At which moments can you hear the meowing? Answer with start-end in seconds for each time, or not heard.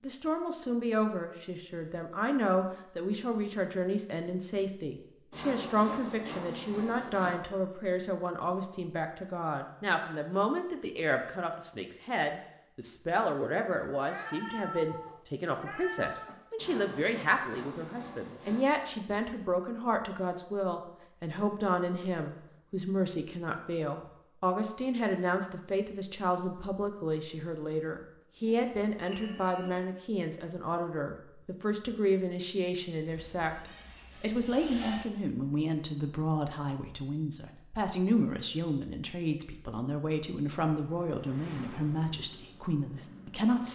13.9-16.4, 29.1-29.8.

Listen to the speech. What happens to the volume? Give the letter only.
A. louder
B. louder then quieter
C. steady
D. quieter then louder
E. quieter
C.